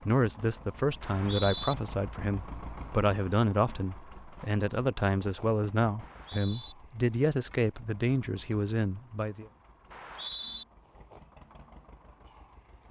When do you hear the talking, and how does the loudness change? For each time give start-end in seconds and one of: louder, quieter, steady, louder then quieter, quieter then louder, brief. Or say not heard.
0.1-9.4 steady.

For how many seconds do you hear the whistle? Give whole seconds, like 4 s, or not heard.
2 s.